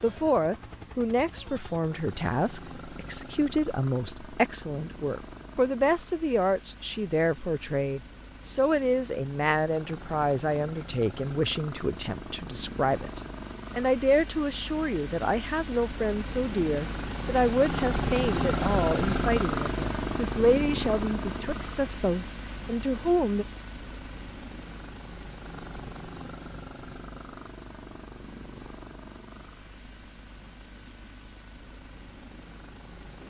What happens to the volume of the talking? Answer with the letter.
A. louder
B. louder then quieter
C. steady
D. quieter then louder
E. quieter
C.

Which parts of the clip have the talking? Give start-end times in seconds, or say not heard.
0.0-23.4.